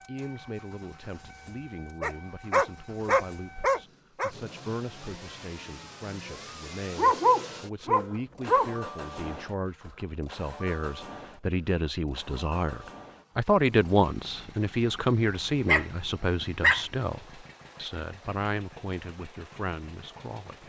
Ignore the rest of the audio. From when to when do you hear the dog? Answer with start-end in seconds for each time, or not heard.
2.0-4.3, 7.0-8.8, 15.7-16.9.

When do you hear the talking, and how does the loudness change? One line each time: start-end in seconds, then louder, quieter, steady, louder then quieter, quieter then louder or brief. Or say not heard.
0.1-20.6 louder then quieter.